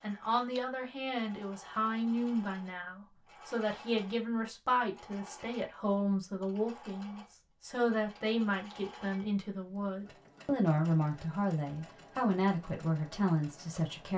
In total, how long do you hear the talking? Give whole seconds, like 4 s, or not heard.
14 s.